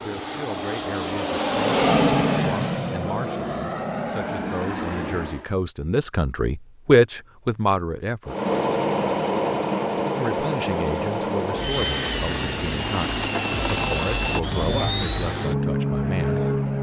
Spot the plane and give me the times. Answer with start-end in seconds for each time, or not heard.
0.0-5.5, 8.2-16.7.